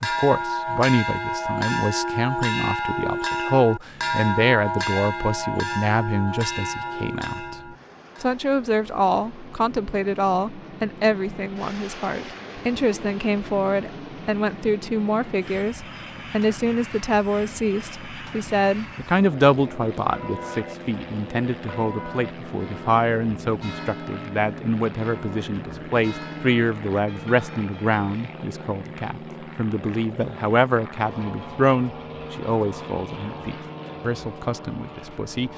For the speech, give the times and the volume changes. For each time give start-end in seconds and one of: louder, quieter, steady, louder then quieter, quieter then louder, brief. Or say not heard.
0.0-35.5 steady.